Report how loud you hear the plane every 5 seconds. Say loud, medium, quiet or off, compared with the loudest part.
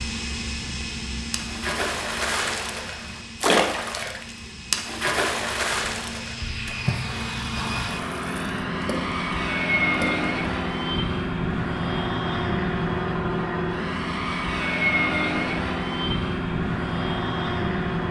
medium, loud, loud, loud.